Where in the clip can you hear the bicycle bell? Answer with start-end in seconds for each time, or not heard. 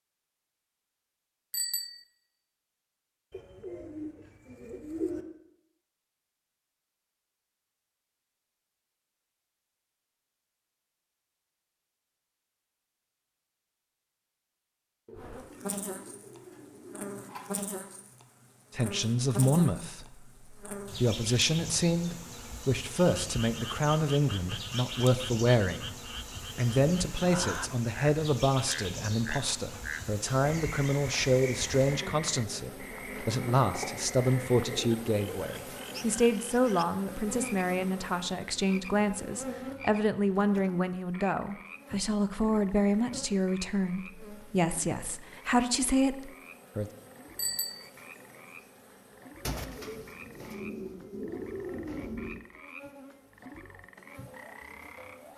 1.5-2.0, 47.4-47.9.